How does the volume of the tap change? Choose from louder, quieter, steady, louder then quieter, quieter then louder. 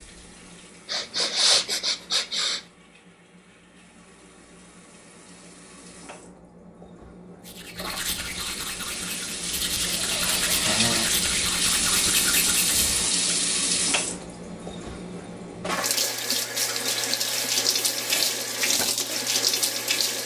louder.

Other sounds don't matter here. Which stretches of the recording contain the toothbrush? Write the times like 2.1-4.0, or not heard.
7.5-13.2.